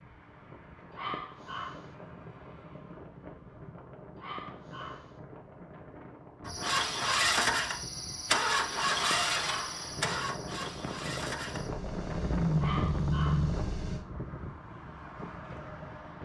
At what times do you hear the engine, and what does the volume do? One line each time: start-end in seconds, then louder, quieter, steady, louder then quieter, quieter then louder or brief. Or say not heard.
6.5-14.1 quieter then louder.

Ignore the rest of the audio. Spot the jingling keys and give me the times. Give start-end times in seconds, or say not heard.
not heard.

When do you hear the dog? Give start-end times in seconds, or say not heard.
0.9-1.9, 4.2-5.2, 8.8-9.8, 12.6-13.6.